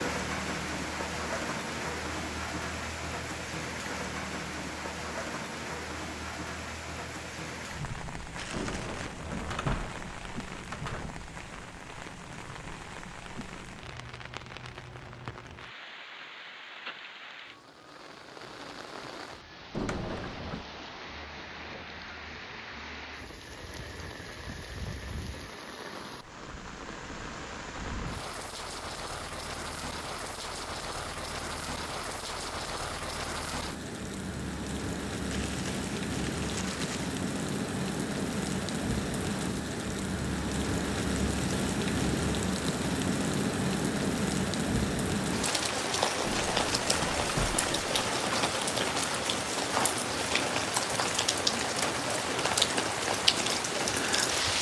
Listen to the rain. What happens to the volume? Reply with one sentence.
The loudness of the rain goes down, then up.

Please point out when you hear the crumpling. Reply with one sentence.
The crumpling can be heard from 8.3 to 9.1 s and from 35.3 to 37.1 s.